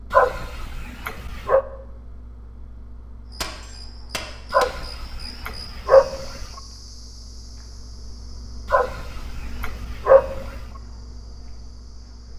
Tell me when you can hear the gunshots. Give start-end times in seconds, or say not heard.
3.4-4.7.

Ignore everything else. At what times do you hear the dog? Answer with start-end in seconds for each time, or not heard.
0.1-1.6, 4.5-6.5, 8.7-10.7.